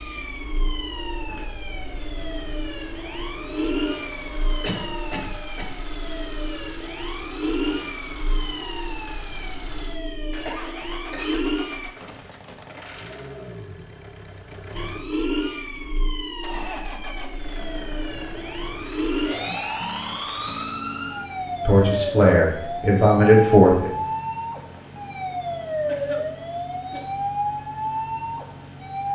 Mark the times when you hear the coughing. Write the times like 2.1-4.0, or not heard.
4.6-5.7, 10.4-11.4, 25.9-27.1.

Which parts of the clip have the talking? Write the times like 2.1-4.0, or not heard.
21.6-23.9.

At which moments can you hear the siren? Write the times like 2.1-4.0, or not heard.
0.0-11.9, 14.7-29.1.